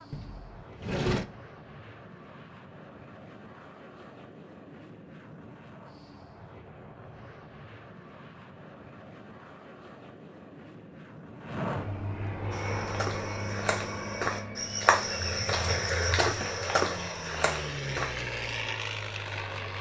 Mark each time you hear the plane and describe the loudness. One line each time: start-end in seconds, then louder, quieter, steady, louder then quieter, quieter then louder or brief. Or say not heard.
0.0-19.7 louder.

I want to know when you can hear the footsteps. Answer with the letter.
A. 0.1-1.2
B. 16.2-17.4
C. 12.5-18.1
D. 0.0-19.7
C.